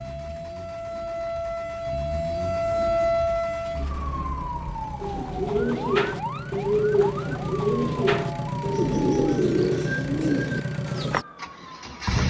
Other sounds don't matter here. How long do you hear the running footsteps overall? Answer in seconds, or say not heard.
not heard.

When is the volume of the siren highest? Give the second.
3 s.